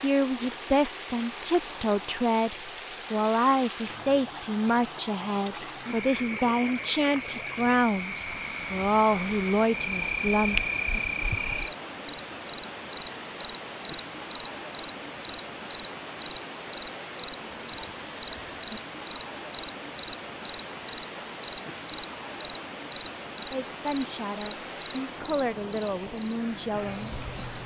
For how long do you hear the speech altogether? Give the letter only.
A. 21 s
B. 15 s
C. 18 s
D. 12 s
B.